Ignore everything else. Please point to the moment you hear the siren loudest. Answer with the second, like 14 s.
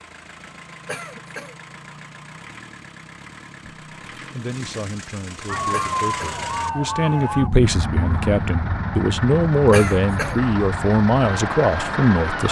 6 s.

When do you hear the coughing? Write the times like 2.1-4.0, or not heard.
0.8-1.6, 5.7-6.4, 9.7-10.4.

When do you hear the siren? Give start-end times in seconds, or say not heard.
5.5-12.4.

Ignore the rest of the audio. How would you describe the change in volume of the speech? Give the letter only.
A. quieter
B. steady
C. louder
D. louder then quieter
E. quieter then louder
C.